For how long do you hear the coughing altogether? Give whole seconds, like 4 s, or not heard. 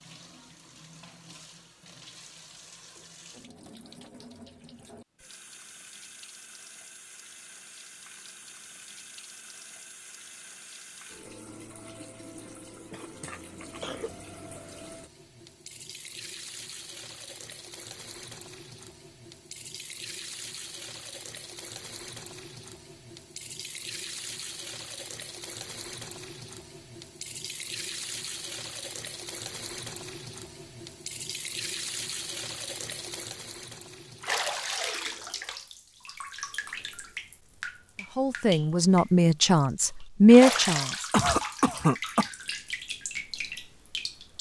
3 s.